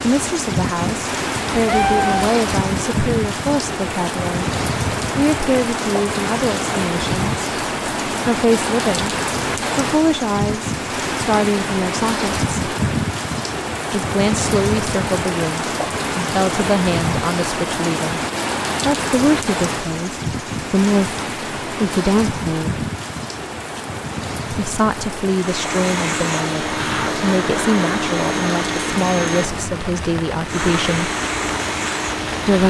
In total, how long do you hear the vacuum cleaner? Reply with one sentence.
The vacuum cleaner can be heard for 7 seconds in total.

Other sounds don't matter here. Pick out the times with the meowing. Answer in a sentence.
You can hear the meowing from 1.5 to 2.4 s.